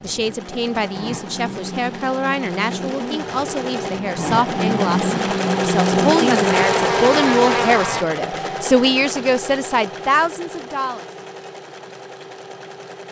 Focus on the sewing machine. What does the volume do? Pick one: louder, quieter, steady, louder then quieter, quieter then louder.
louder then quieter.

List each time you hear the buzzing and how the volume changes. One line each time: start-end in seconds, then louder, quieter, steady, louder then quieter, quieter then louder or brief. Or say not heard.
0.0-8.1 louder.